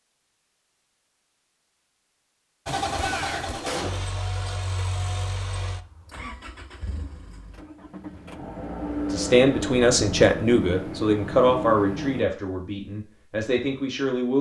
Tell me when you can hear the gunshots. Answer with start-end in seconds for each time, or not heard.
3.0-4.2.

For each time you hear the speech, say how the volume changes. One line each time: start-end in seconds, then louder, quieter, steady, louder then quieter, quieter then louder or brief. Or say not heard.
9.1-14.3 quieter.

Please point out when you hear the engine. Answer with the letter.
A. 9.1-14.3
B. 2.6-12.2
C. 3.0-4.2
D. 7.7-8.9
B.